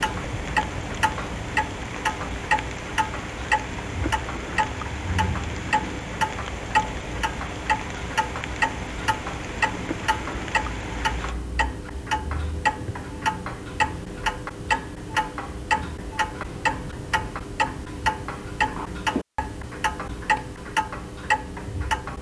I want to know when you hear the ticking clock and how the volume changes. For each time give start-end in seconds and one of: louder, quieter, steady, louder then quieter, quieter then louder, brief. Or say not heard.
0.0-22.1 steady.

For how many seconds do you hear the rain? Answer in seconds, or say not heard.
11 s.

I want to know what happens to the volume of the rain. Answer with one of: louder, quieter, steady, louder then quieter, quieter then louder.
steady.